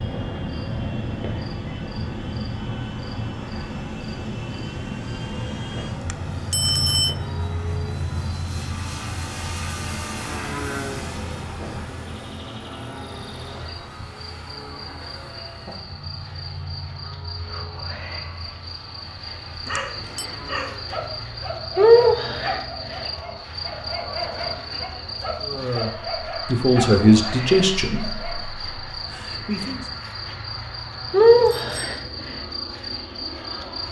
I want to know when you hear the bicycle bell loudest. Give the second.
7 s.